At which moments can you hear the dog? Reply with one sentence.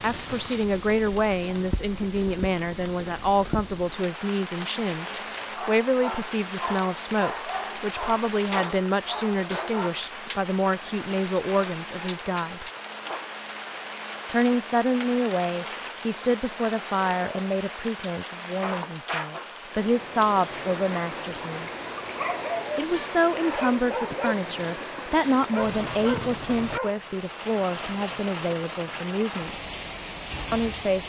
The dog can be heard from 5.4 to 9.9 s and from 22.0 to 27.0 s.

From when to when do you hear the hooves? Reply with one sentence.
The hooves can't be heard in this clip.